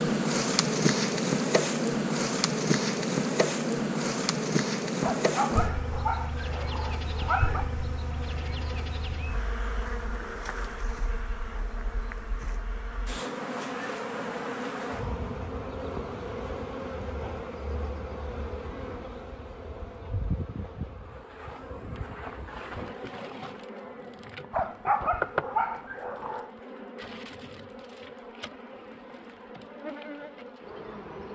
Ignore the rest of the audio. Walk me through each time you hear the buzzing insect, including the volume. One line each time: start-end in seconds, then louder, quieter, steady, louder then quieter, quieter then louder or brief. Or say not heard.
0.0-31.3 quieter.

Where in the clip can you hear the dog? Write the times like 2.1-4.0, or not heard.
5.0-7.7, 24.5-26.5.